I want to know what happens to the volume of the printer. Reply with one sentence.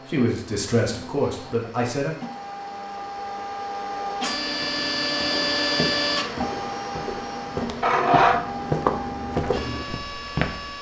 The volume of the printer goes up, then down.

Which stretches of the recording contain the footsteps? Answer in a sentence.
You can hear the footsteps from 4.5 to 10.7 s.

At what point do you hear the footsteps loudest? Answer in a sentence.
The loudest moment of the footsteps is at 9 seconds.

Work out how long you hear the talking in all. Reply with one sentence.
The talking can be heard for 2 seconds in total.